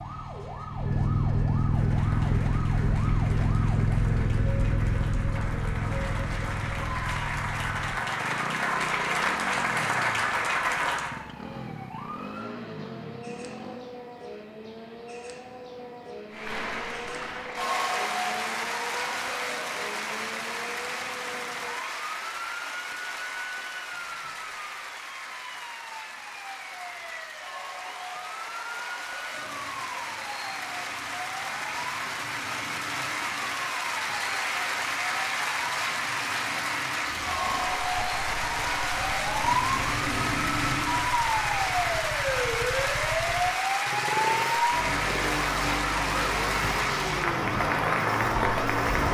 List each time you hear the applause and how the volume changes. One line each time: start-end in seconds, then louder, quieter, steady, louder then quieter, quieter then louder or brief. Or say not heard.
1.6-11.2 louder
16.3-49.0 quieter then louder.